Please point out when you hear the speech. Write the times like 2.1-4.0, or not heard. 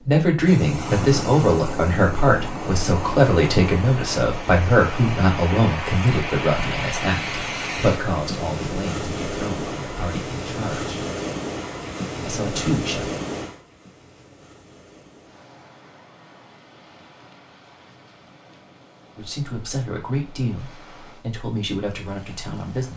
0.0-10.9, 12.2-13.1, 19.1-22.9.